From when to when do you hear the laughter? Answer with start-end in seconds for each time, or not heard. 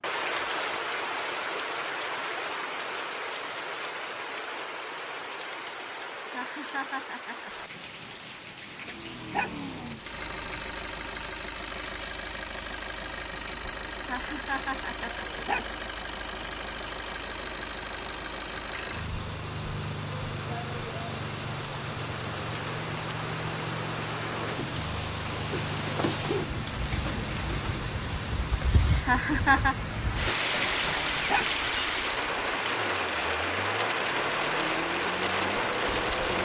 6.3-7.5, 14.1-15.2, 29.0-29.8.